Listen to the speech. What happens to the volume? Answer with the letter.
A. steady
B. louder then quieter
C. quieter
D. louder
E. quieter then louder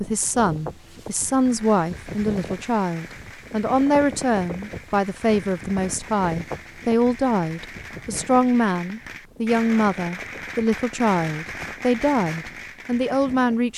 A.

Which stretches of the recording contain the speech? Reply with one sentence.
The speech can be heard from 0.0 to 13.7 s.